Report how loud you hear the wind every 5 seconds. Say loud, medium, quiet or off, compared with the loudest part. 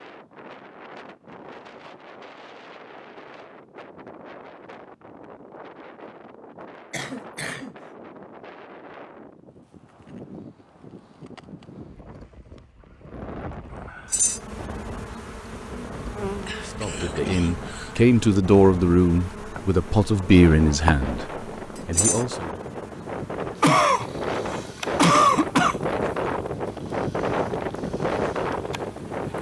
quiet, quiet, quiet, quiet, medium, loud.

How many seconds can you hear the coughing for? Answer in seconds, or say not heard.
5 s.